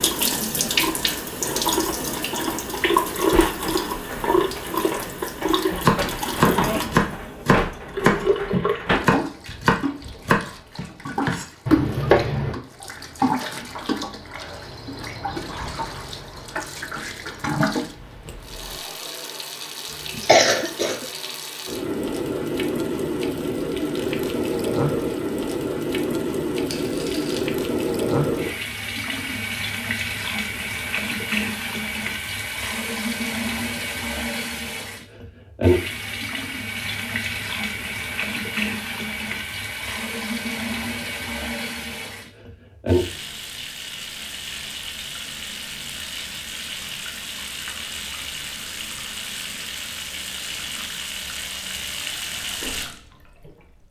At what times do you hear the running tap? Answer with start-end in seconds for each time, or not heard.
0.0-53.8.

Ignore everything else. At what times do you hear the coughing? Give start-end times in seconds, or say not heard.
19.9-21.1.